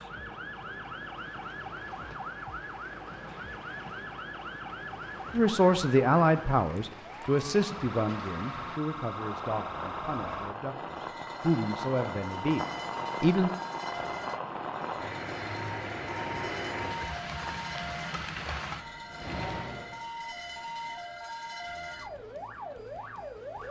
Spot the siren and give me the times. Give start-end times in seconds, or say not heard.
0.0-23.6.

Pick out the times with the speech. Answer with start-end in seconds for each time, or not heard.
5.3-13.5.